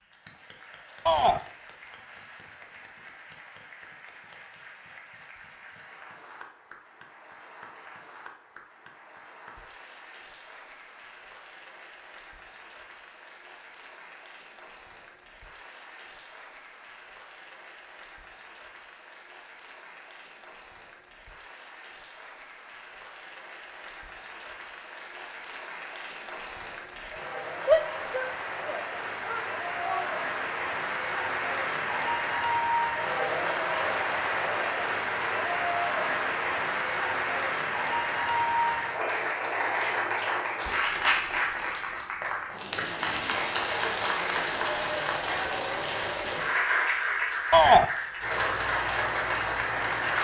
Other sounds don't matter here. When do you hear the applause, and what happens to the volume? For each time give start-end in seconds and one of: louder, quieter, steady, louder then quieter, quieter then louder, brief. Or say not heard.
0.0-50.1 louder.